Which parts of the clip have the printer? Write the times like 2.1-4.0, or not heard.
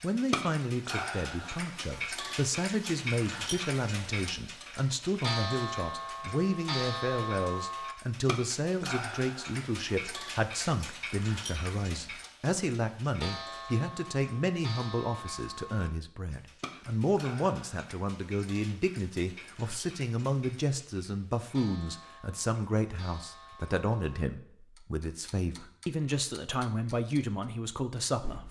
not heard.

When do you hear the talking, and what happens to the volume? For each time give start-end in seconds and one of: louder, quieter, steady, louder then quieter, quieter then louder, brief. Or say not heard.
0.0-28.4 steady.